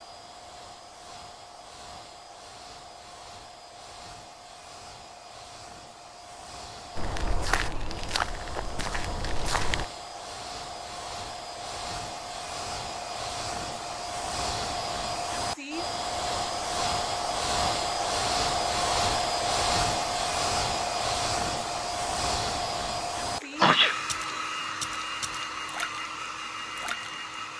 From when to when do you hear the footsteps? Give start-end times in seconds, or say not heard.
7.0-9.8.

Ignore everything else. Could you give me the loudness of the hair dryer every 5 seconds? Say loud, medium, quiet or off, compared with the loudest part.
quiet, quiet, medium, loud, loud, medium.